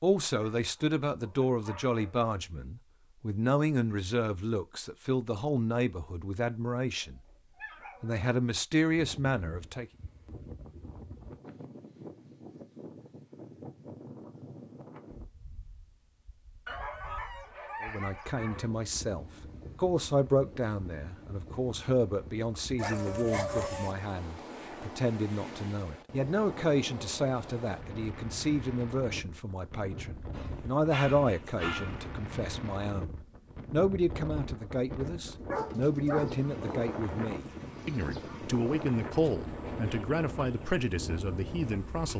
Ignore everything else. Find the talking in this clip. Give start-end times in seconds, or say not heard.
0.0-7.2, 8.0-9.8, 17.8-42.1.